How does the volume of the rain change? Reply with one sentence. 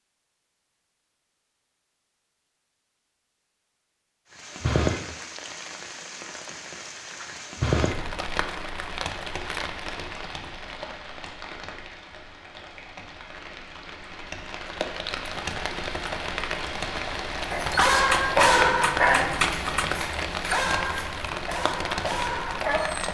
The loudness of the rain goes down, then up.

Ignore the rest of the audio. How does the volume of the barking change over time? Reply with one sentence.
The volume of the barking goes down.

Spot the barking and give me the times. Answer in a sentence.
You can hear the barking from 17.5 to 23.0 s.